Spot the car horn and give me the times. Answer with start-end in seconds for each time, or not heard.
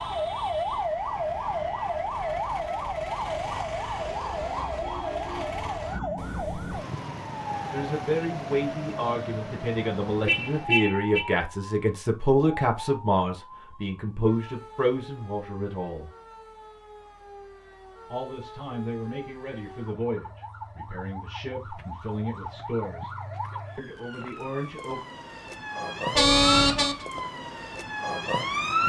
10.2-11.3, 26.1-26.9.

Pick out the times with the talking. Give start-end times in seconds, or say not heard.
7.7-16.1, 18.1-23.1, 23.8-25.1.